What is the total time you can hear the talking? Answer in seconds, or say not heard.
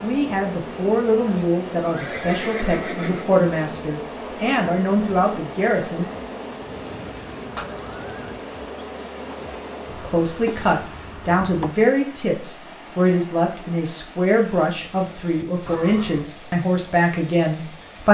14 s.